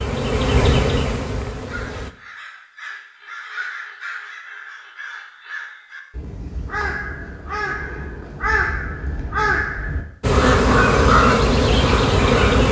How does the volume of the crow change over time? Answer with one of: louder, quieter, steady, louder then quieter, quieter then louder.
louder.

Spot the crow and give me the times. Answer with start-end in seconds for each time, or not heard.
1.6-12.6.